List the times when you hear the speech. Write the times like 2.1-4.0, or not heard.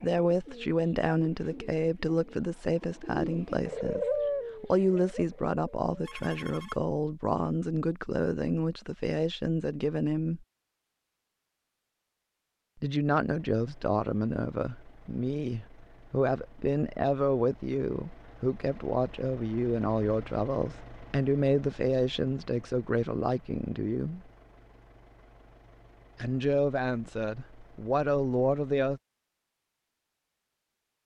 0.0-10.4, 12.8-24.3, 26.1-29.0.